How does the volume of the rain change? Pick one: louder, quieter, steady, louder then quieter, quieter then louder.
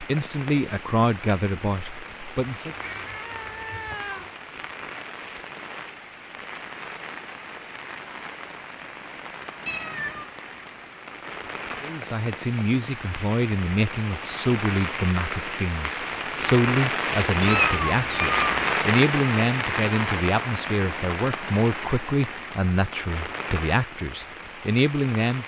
louder then quieter.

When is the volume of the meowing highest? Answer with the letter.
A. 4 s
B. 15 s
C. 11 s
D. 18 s
D.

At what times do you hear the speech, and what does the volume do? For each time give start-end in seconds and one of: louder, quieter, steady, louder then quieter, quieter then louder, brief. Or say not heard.
0.0-2.8 brief
11.8-25.4 steady.